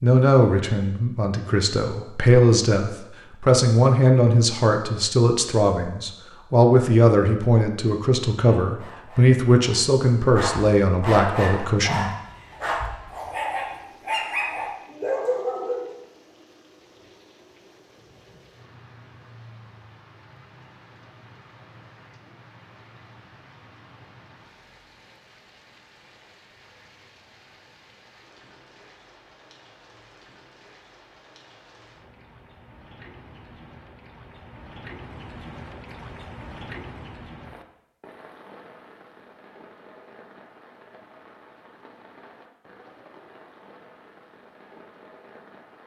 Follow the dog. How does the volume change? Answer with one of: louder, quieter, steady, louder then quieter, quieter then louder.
louder.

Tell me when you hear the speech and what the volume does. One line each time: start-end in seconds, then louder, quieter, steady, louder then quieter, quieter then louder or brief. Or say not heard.
0.0-12.1 steady.